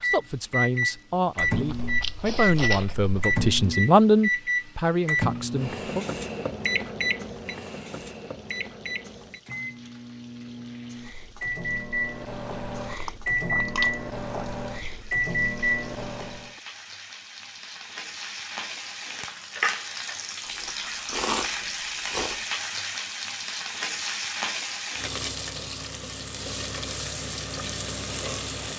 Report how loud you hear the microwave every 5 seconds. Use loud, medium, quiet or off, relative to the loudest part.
loud, medium, medium, loud, off, off.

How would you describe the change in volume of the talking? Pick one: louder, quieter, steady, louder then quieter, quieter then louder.
louder then quieter.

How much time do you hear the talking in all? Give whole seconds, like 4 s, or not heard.
6 s.